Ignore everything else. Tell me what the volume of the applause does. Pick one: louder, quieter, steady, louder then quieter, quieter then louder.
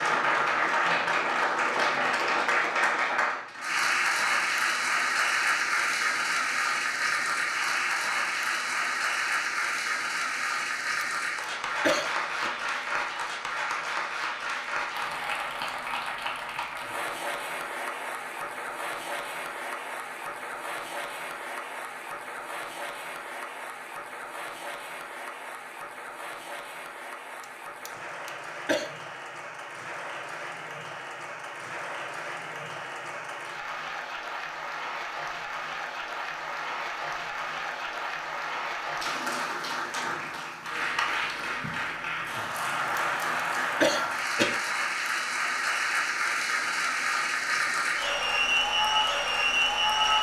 quieter then louder.